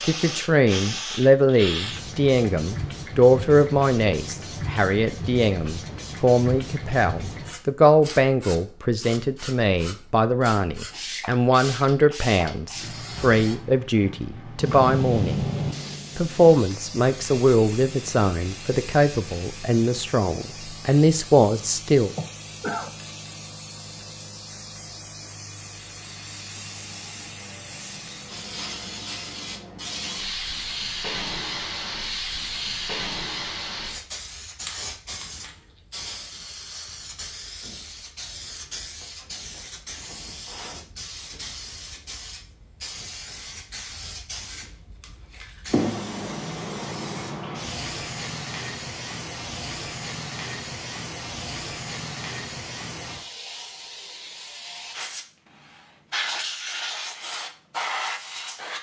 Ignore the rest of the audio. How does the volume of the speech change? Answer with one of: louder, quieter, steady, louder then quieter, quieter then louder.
steady.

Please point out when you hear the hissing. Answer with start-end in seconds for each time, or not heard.
0.0-58.7.